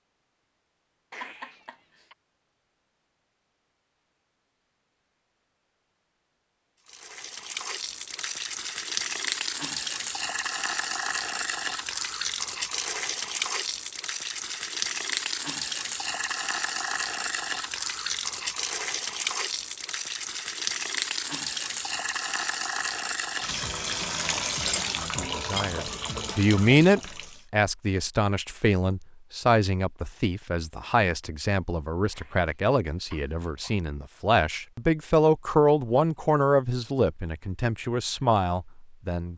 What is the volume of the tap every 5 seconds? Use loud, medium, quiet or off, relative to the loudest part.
off, loud, loud, loud, loud, loud, off, off.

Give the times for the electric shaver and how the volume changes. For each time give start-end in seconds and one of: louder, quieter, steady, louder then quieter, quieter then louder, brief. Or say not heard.
not heard.